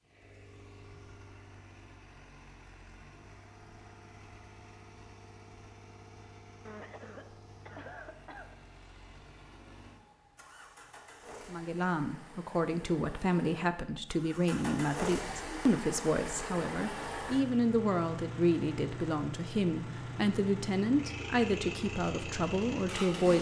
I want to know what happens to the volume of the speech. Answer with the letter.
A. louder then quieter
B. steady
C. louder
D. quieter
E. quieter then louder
B.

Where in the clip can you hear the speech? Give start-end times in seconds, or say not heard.
11.4-23.3.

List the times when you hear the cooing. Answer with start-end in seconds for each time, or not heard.
not heard.